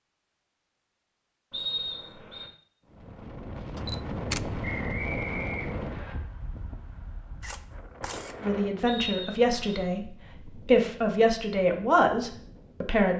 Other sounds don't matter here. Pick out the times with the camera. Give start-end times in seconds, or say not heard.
3.8-4.4, 7.4-8.4.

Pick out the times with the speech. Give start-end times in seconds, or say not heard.
8.4-13.1.